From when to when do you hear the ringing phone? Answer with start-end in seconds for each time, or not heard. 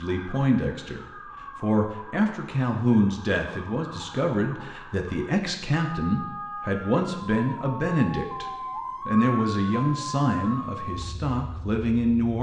not heard.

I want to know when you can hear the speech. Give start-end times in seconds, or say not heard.
0.0-8.4, 9.1-12.3.